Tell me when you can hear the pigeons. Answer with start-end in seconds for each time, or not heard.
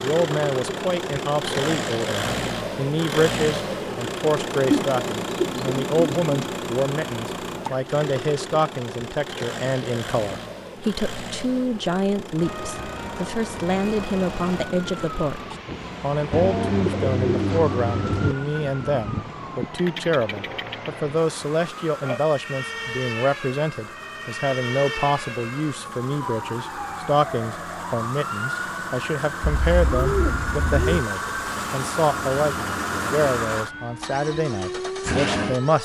4.7-6.5, 16.3-18.4, 29.4-31.1.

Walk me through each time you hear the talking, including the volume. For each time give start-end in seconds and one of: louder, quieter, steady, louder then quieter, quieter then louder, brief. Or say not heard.
0.0-35.8 steady.